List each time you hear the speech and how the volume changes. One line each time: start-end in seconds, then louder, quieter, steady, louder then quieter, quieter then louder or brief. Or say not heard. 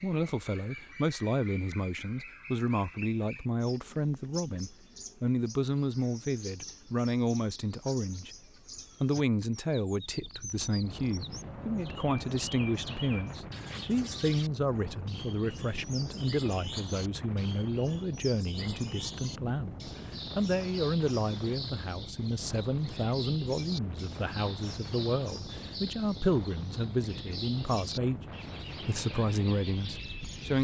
0.0-8.3 steady
9.0-30.5 steady.